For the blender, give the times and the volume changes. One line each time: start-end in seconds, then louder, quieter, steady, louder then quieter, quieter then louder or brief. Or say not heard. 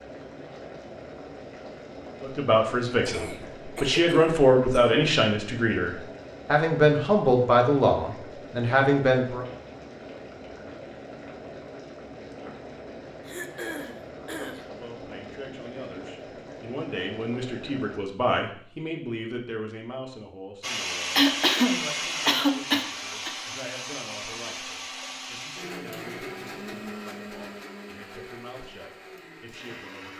20.6-30.1 quieter.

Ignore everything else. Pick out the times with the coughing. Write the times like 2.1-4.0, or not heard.
3.0-5.0, 13.2-14.7, 21.1-23.3.